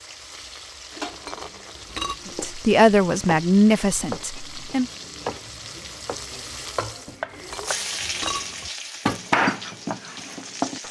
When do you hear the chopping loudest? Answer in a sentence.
The volume of the chopping peaks at 9 seconds.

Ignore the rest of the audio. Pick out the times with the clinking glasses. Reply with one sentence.
You can hear the clinking glasses from 1.1 to 2.2 s and from 7.3 to 8.7 s.